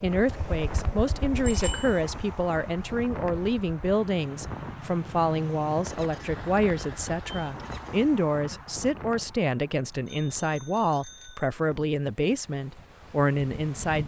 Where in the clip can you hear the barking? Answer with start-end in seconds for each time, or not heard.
not heard.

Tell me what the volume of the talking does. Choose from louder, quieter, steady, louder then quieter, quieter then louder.
steady.